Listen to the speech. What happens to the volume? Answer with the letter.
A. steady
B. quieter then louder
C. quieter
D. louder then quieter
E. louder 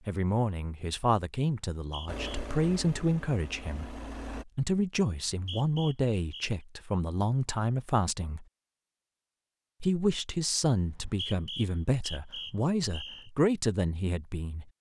A.